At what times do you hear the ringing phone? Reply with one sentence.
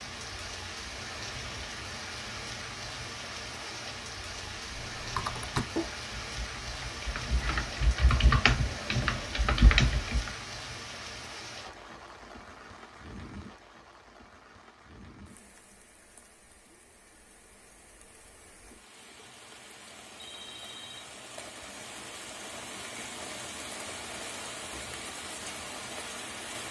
You can hear the ringing phone from 20.2 to 21.1 s.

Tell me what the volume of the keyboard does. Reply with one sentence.
The loudness of the keyboard goes down, then up.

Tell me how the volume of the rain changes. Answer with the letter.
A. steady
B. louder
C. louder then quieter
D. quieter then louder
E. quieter
D.